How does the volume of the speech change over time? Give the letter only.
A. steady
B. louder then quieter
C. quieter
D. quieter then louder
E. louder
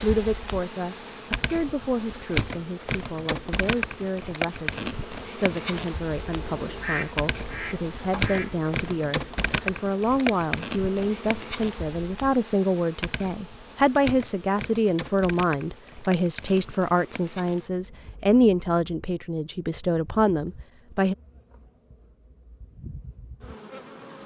E.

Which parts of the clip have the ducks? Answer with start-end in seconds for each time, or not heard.
6.2-8.7.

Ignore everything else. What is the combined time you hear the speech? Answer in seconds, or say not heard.
21 s.